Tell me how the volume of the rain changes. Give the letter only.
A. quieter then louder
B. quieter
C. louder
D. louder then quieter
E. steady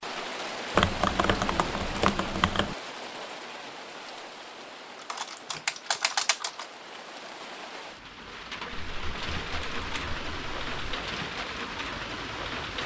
A.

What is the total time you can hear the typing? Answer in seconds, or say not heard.
6 s.